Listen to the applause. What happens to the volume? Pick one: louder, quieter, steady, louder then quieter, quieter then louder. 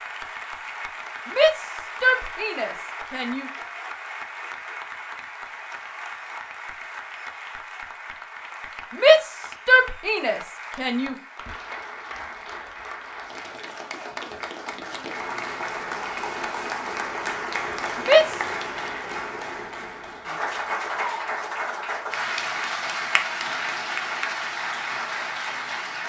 louder.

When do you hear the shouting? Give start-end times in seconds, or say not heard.
1.2-3.5, 9.0-11.2, 18.1-18.5.